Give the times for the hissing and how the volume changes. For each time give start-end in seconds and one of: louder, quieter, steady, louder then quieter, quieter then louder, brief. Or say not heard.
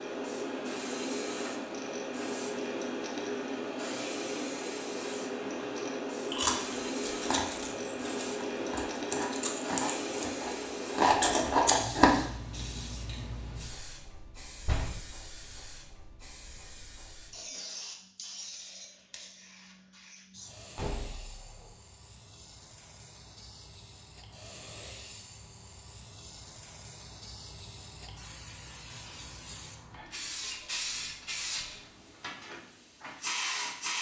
0.0-33.9 quieter then louder.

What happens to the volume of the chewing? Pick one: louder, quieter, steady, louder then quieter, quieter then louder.
quieter then louder.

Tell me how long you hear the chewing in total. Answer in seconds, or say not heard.
6 s.